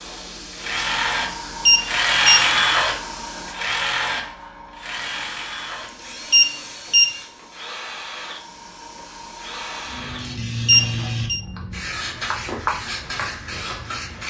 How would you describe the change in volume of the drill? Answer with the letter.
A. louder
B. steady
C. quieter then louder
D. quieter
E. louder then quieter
D.